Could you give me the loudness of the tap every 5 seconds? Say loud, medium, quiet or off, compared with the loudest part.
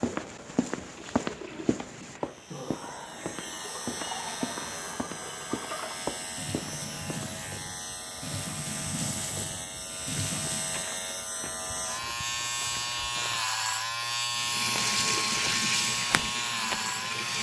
medium, medium, loud, loud.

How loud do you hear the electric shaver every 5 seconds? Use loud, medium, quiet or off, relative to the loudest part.
medium, medium, loud, loud.